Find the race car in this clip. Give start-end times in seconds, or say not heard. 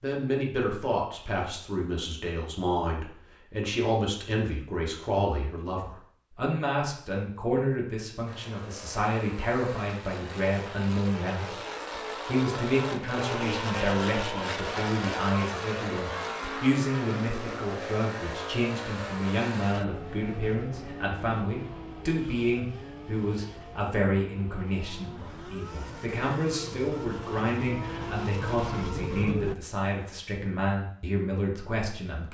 8.2-29.6.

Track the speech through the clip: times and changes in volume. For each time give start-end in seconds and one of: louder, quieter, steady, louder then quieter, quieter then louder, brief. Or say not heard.
0.0-11.6 steady
12.2-32.2 steady.